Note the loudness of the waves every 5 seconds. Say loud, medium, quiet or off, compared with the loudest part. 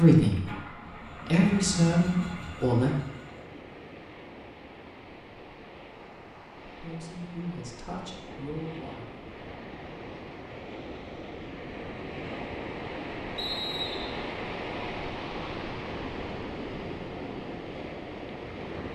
medium, medium, loud, loud.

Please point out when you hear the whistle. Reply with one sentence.
The whistle can be heard from 13.3 to 14.2 s.